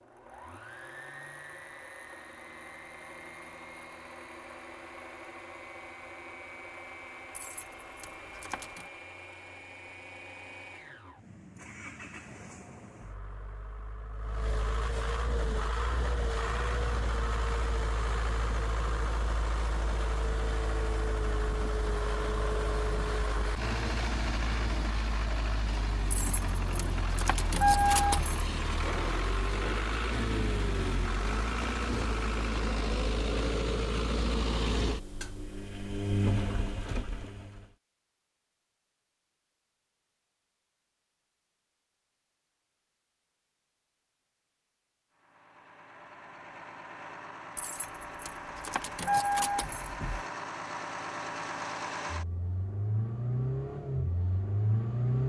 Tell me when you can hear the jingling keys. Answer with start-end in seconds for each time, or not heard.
7.3-8.9, 26.1-28.5, 47.5-50.2.